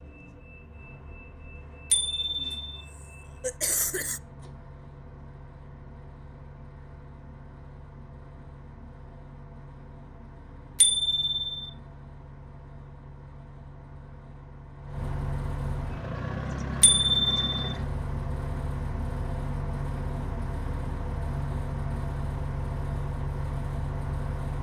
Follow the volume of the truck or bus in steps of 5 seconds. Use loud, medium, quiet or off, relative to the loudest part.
quiet, quiet, quiet, loud, loud.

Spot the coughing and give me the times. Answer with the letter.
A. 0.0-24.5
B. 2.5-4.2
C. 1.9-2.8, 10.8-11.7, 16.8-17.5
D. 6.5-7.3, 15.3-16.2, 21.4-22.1
B.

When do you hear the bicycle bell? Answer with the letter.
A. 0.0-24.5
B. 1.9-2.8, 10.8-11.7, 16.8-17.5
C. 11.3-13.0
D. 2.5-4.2
B.